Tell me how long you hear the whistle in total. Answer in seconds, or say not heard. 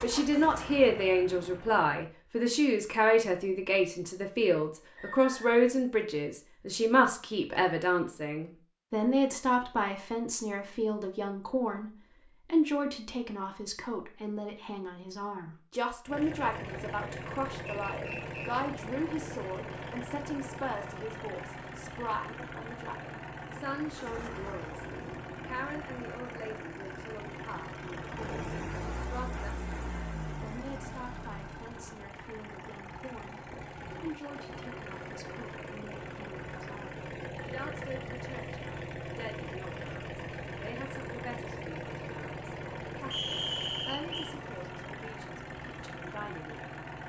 3 s.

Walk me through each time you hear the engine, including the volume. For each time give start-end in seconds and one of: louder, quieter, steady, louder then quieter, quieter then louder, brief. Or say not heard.
0.0-1.9 brief
16.1-47.0 steady.